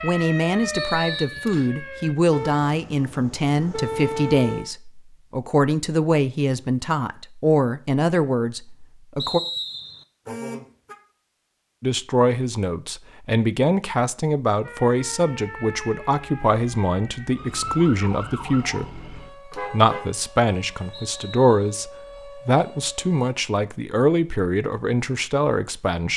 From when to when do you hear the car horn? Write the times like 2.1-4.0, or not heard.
2.3-4.7, 10.2-10.9, 19.5-20.1.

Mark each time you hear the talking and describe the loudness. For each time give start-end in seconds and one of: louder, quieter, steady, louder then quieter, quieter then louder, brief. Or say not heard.
0.0-9.4 steady
11.8-26.1 steady.